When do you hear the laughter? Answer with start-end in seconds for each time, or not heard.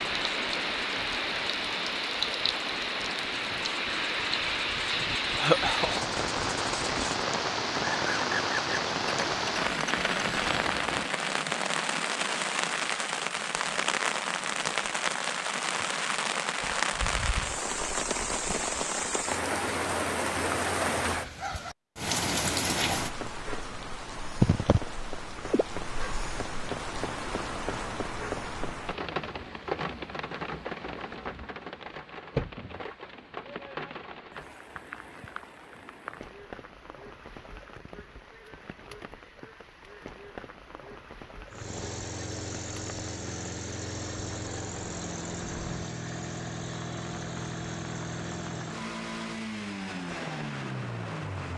5.3-6.1.